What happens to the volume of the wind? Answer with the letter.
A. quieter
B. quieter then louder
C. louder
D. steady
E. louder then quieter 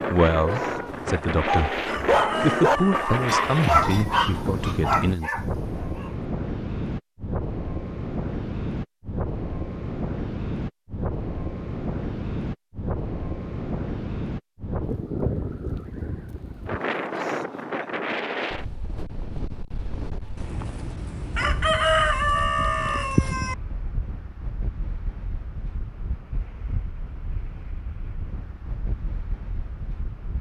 A.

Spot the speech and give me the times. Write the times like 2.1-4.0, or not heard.
0.1-5.3.